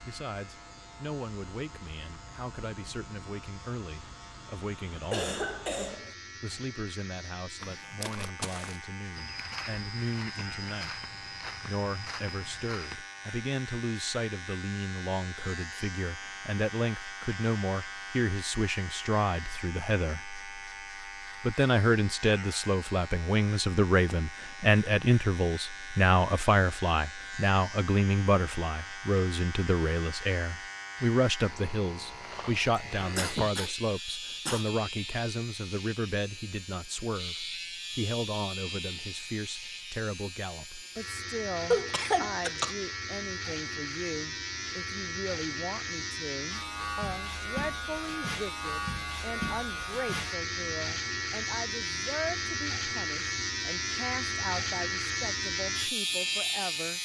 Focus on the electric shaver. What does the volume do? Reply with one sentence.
The volume of the electric shaver goes up.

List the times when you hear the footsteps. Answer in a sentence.
You can hear the footsteps from 7.6 to 13.0 s.